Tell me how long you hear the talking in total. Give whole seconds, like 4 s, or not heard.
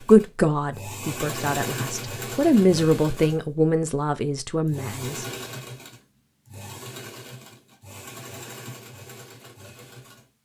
5 s.